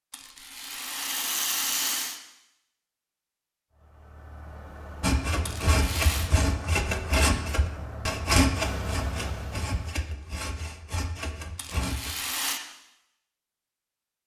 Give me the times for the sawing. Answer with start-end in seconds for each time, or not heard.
5.0-12.2.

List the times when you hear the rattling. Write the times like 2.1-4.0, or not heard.
0.1-2.2, 5.5-6.3, 11.6-12.6.